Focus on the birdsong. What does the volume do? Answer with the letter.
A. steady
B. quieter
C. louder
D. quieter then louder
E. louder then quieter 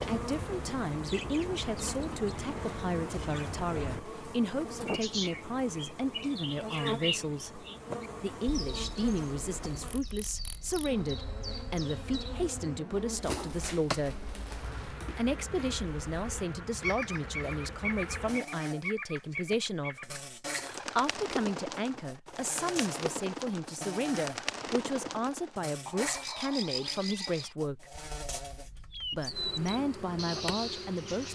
A.